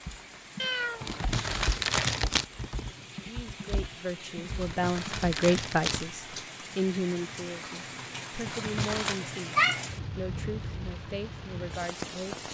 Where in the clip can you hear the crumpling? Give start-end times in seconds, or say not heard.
1.0-2.5, 4.5-6.4, 8.4-9.2.